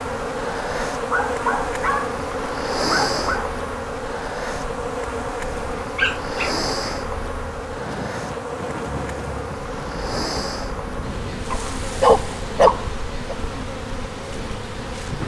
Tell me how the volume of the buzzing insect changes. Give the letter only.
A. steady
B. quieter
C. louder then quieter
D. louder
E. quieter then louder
B.